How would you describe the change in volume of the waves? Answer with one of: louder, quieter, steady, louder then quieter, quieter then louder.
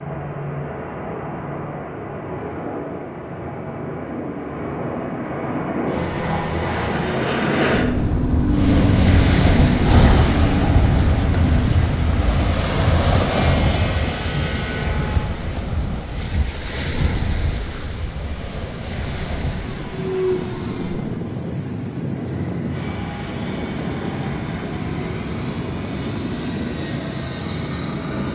quieter.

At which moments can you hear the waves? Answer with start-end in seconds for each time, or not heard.
8.5-28.3.